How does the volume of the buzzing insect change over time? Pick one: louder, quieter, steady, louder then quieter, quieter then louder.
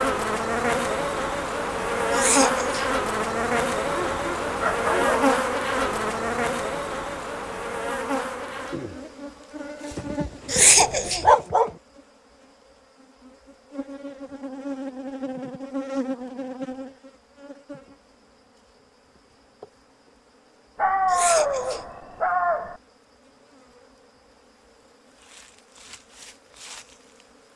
quieter.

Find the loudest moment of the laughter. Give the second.
11 s.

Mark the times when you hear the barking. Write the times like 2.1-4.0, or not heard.
3.9-5.3, 9.9-11.7, 20.8-22.8.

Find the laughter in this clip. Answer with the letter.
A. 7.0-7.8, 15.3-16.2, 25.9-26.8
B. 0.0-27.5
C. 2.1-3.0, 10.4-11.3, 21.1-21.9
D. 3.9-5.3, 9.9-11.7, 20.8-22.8
C.